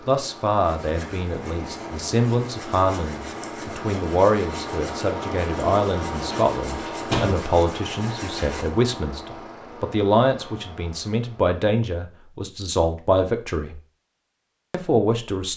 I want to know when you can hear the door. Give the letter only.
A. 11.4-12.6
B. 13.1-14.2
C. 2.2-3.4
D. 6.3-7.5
D.